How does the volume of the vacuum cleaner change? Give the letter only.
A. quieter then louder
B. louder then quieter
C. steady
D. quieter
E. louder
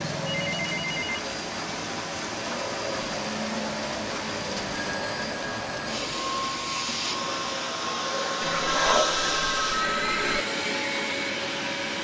E.